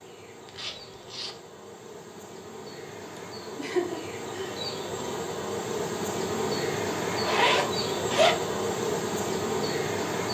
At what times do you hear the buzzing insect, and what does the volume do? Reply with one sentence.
The buzzing insect can be heard from 0.0 to 10.2 s, getting louder.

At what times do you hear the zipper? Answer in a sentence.
The zipper can be heard from 0.5 to 1.4 s and from 7.1 to 8.3 s.